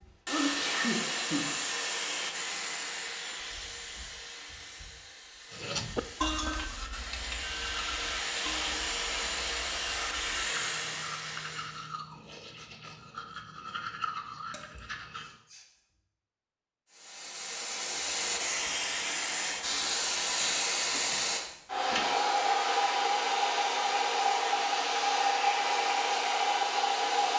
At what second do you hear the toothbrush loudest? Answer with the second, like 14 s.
6 s.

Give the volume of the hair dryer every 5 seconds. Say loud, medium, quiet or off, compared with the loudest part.
medium, medium, medium, medium, loud, loud.